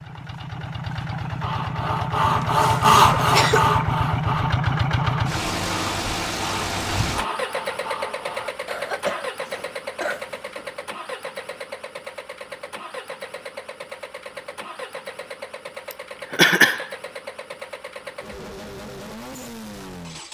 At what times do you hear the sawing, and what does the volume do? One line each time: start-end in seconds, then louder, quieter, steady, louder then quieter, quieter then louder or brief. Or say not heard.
1.4-8.5 quieter.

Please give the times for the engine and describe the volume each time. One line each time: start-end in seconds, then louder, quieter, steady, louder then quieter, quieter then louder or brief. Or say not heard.
0.0-20.2 quieter.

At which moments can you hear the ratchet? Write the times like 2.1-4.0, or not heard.
not heard.